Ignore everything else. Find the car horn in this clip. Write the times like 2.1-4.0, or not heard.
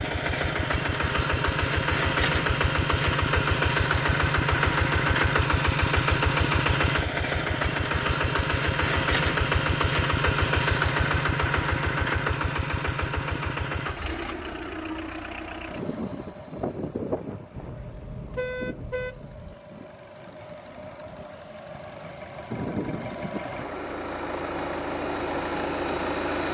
17.6-19.6.